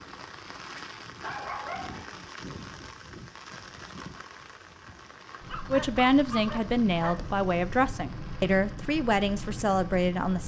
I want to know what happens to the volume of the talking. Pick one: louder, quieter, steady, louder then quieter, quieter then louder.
steady.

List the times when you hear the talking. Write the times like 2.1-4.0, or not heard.
5.7-10.4.